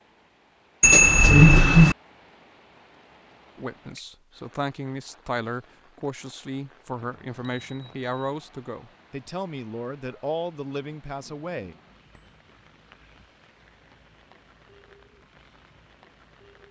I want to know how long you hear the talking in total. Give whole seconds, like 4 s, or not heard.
8 s.